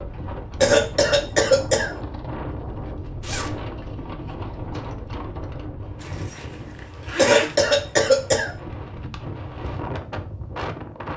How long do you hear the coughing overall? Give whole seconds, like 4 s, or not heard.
3 s.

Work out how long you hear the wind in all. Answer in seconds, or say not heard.
11 s.